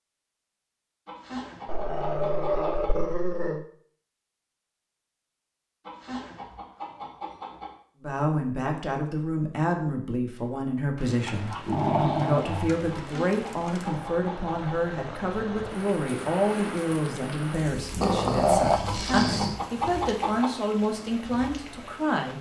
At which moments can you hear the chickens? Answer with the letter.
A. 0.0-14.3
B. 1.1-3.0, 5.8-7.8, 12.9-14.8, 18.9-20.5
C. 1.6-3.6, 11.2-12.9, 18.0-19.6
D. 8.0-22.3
B.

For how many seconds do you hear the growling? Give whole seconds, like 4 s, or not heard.
5 s.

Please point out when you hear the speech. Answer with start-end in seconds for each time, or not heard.
8.0-22.3.